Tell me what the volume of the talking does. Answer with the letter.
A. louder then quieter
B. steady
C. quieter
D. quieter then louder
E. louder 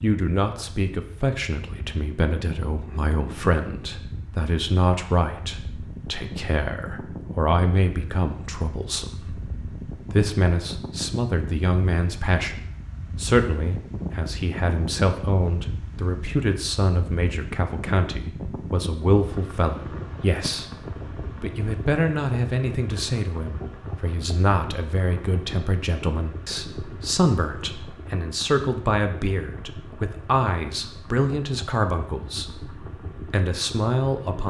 B.